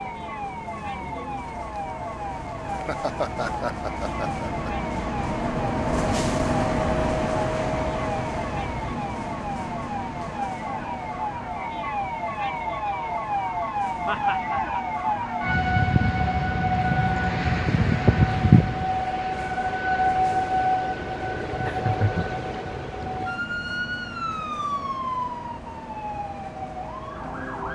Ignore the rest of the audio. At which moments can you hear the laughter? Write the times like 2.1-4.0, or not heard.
2.7-4.7, 14.1-14.8, 21.6-22.2.